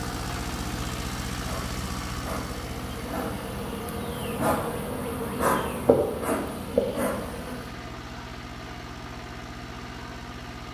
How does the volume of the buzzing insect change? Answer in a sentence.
The loudness of the buzzing insect goes up.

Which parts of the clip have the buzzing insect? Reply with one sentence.
The buzzing insect can be heard from 0.0 to 7.8 s.